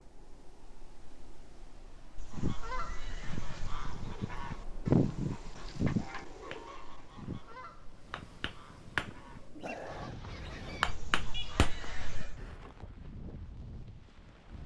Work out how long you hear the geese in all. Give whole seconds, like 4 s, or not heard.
10 s.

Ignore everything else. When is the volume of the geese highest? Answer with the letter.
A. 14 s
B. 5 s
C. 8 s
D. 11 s
B.